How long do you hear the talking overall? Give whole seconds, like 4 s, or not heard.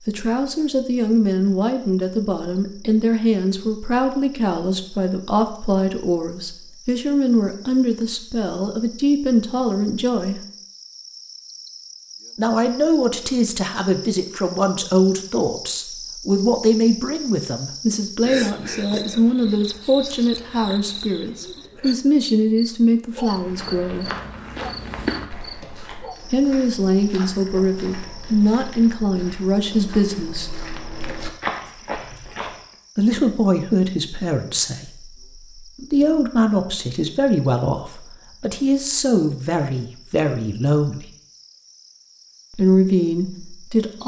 36 s.